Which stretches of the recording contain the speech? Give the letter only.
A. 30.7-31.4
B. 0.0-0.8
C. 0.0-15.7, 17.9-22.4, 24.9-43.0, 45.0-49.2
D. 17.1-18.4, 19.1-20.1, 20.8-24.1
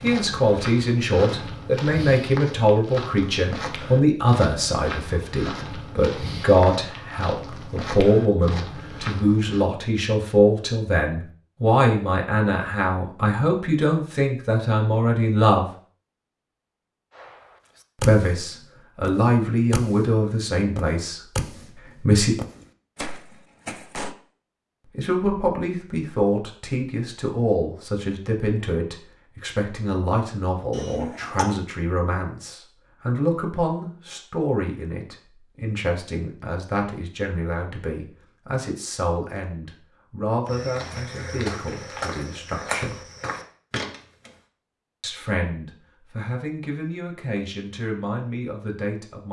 C.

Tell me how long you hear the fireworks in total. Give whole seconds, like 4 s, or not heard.
6 s.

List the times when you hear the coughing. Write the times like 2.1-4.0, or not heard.
30.7-31.4.